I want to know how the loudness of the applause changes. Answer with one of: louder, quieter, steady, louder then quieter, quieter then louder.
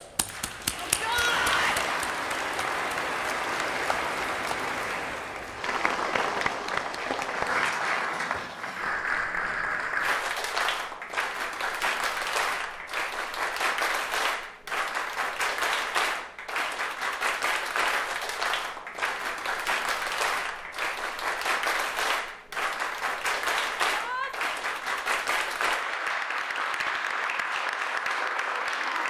steady.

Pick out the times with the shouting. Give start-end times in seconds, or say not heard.
0.8-1.9, 23.9-24.3.